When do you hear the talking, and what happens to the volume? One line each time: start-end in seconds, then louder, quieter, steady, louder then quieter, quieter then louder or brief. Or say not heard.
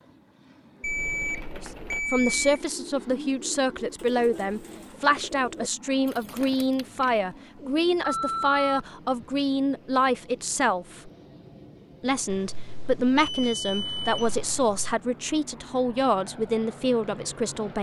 1.6-11.1 steady
12.0-17.7 steady.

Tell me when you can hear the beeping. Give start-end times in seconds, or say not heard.
0.8-2.6, 8.0-9.2, 12.2-15.0.